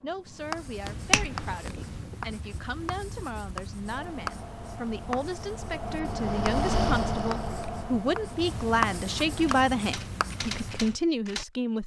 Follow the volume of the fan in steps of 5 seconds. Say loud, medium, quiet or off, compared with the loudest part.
quiet, loud, off.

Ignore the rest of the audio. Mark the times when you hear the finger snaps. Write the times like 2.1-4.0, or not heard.
0.8-2.0.